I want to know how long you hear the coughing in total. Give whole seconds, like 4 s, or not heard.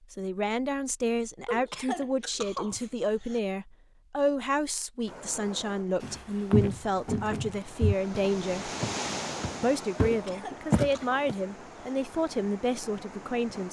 4 s.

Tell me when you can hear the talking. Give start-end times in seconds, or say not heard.
0.1-8.7, 9.6-13.6.